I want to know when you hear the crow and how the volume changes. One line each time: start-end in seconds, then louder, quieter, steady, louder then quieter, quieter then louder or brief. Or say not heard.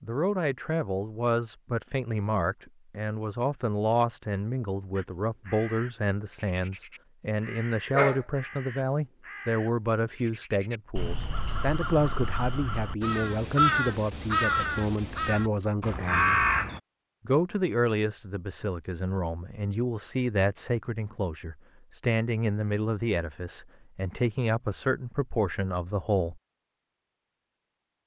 5.0-16.8 louder.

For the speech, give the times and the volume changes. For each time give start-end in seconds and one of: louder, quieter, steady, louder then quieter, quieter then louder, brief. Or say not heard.
0.0-16.4 steady
17.2-26.4 steady.